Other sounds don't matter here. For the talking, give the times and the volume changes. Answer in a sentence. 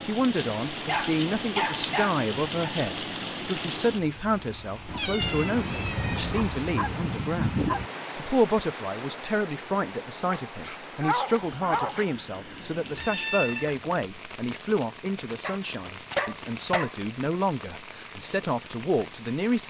The talking can be heard from 0.0 to 19.6 s, at a steady volume.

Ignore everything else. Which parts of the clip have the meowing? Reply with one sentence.
You can hear the meowing from 4.8 to 6.4 s and from 12.9 to 13.8 s.